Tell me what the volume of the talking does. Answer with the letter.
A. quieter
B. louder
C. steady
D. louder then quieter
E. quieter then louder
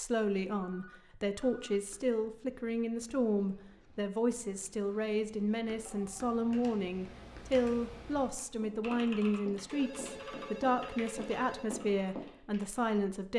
C.